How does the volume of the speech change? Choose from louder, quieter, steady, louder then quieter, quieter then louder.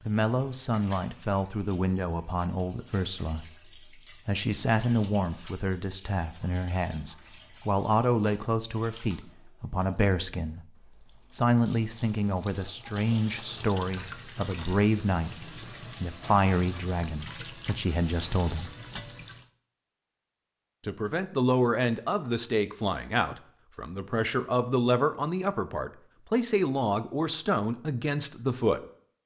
steady.